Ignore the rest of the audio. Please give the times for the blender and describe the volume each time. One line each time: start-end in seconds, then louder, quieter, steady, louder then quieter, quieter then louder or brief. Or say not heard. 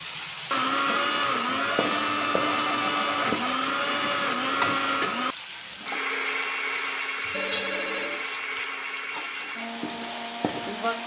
0.0-11.0 quieter.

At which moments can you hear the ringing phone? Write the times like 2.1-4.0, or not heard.
1.4-3.5, 7.3-8.2.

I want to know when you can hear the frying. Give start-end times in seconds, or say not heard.
0.0-11.0.